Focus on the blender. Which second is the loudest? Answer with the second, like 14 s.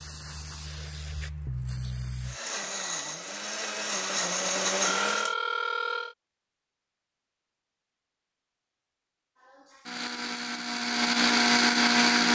12 s.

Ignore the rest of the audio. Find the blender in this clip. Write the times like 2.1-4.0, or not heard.
2.2-5.3, 9.4-12.3.